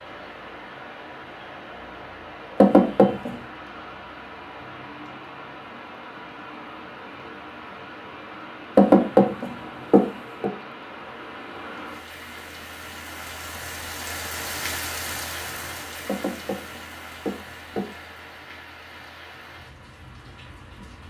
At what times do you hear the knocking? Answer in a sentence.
The knocking can be heard from 2.6 to 3.4 s, from 8.8 to 10.5 s and from 16.1 to 17.9 s.